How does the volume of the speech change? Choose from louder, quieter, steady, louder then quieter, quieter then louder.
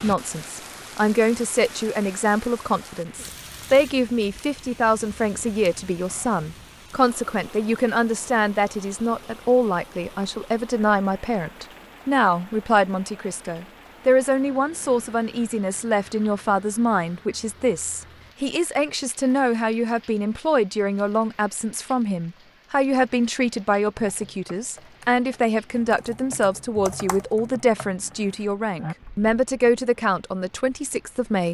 steady.